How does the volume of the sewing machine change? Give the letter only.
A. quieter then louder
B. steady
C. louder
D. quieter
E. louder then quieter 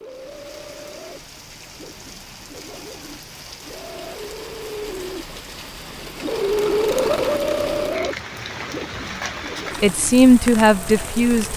E.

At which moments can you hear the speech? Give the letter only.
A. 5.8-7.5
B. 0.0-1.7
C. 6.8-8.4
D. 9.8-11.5
D.